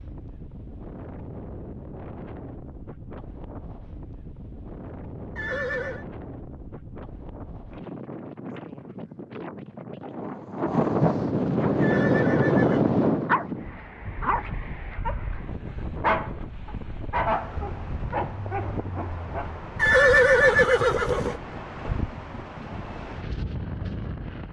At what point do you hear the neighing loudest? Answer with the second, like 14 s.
20 s.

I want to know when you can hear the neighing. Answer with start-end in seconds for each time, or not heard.
5.3-6.0, 11.8-12.8, 19.8-21.4.